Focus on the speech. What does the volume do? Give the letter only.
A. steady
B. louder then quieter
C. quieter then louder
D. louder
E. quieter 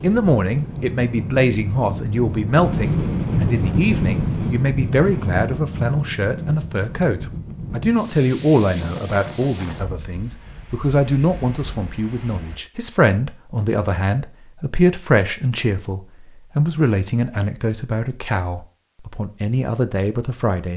A.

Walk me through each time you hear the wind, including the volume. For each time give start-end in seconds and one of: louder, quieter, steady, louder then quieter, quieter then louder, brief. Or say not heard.
0.0-12.6 louder then quieter.